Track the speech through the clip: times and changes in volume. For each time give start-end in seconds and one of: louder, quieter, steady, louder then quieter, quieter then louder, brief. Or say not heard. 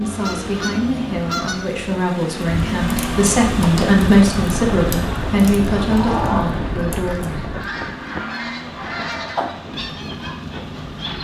0.0-7.6 louder then quieter.